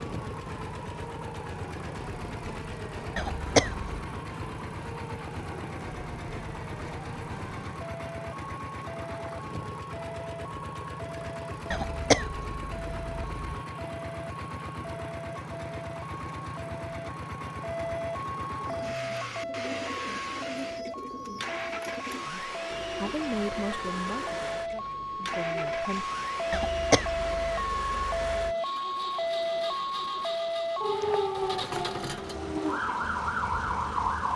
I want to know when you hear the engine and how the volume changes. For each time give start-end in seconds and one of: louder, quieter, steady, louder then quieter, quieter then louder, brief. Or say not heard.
0.0-34.3 steady.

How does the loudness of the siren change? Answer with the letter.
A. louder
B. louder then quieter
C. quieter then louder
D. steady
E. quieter
A.